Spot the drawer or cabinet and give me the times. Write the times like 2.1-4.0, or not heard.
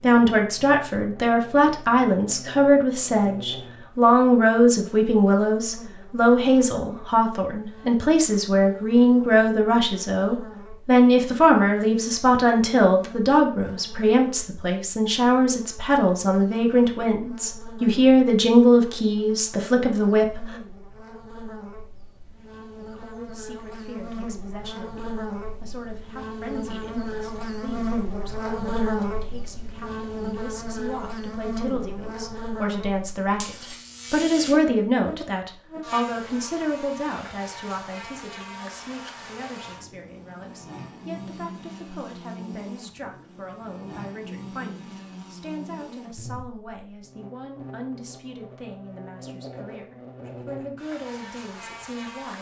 not heard.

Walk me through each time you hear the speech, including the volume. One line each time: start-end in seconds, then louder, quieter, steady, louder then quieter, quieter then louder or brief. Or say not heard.
0.0-20.5 steady
22.8-52.3 louder then quieter.